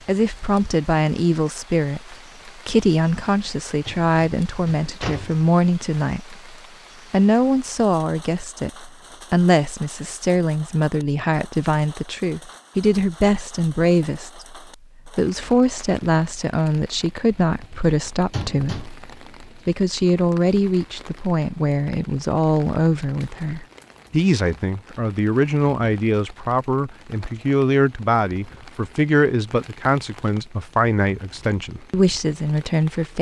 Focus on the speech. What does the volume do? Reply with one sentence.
The loudness of the speech stays about the same.